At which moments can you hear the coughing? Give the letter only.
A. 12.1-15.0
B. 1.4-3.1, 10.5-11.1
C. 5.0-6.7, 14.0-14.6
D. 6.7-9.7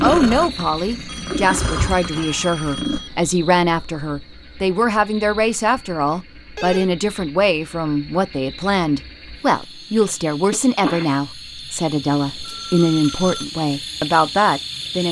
B.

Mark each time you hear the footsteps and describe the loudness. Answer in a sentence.
The footsteps can't be heard in this clip.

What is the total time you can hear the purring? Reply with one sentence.
The purring can be heard for 3 seconds in total.